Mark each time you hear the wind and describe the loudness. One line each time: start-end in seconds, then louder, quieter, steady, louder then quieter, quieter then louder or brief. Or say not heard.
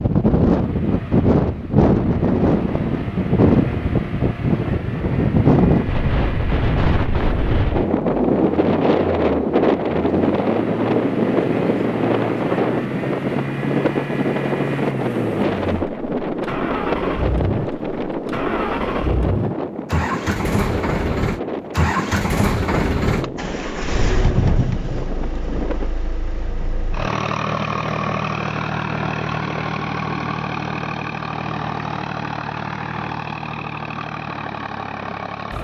0.0-25.9 quieter.